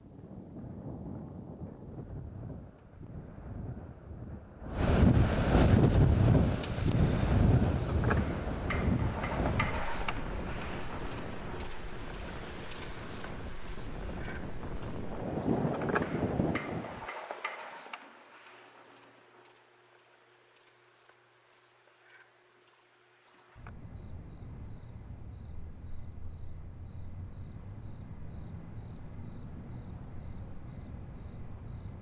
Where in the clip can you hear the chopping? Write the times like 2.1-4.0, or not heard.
not heard.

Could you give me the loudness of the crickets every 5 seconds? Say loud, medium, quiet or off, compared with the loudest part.
off, medium, loud, quiet, quiet, quiet, quiet.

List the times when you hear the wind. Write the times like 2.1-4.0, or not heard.
0.0-17.1.